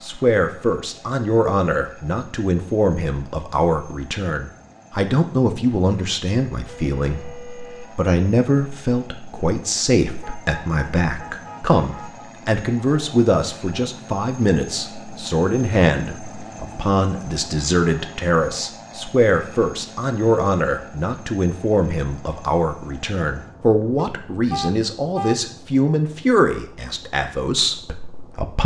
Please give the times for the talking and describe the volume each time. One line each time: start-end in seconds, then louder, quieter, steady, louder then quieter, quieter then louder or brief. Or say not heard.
0.0-28.6 steady.